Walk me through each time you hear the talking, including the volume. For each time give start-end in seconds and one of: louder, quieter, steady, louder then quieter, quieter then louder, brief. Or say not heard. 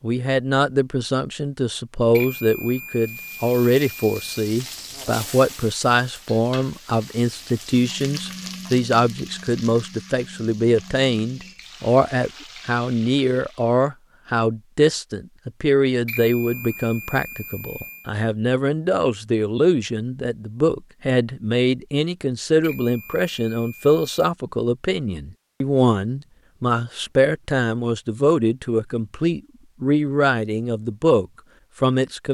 0.0-32.2 steady.